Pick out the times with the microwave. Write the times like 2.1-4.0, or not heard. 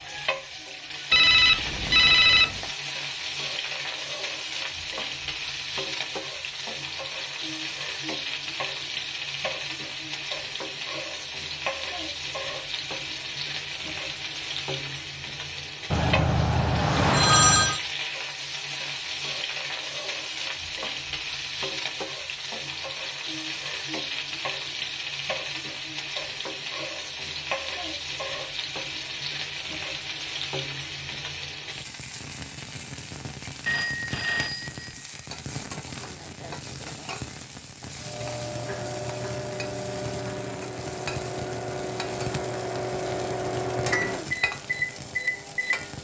38.0-45.9.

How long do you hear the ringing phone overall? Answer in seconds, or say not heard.
5 s.